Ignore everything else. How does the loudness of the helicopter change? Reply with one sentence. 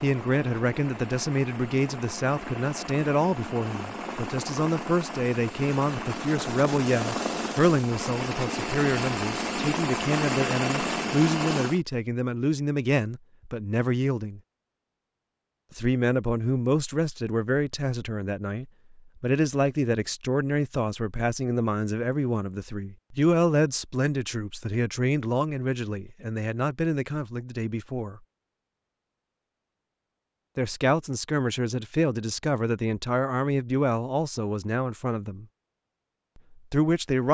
The volume of the helicopter goes up.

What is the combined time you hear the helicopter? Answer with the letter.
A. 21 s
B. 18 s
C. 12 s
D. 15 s
C.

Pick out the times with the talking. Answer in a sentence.
You can hear the talking from 0.0 to 14.4 s, from 15.7 to 28.2 s, from 30.6 to 35.5 s and from 36.7 to 37.2 s.